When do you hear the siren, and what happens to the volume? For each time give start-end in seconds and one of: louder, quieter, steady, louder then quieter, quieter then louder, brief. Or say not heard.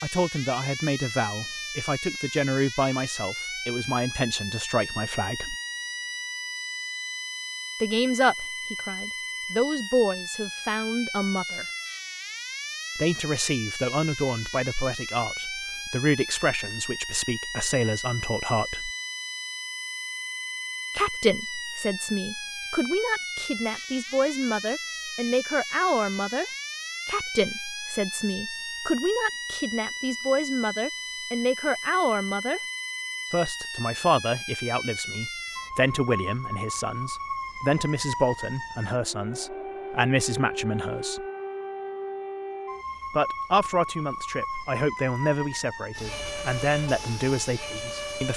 0.0-48.3 steady.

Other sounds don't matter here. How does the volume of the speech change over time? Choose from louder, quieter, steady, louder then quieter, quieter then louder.
steady.